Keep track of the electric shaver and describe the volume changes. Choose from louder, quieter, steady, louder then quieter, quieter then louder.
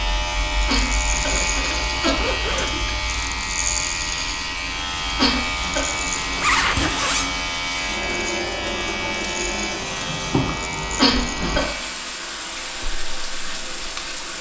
quieter.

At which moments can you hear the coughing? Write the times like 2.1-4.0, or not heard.
0.5-2.1, 5.0-5.8, 10.8-11.7.